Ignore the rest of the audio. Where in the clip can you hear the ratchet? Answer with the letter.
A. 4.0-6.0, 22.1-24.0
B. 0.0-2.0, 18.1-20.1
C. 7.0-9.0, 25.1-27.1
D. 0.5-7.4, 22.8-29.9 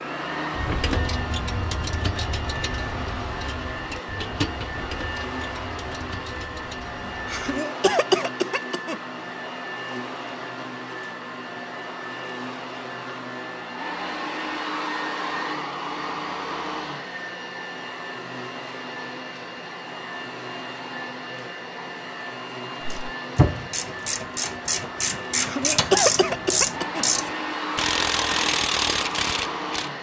D.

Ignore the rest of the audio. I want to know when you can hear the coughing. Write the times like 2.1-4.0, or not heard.
7.0-9.0, 25.1-27.1.